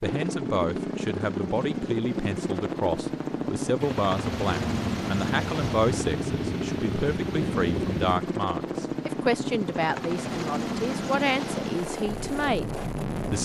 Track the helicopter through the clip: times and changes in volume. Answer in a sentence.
The helicopter can be heard from 0.0 to 13.4 s, at a steady volume.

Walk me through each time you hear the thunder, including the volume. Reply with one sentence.
You can hear the thunder from 3.8 to 8.2 s, at a steady volume.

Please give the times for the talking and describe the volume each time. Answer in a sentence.
The talking can be heard from 0.0 to 13.4 s, at a steady volume.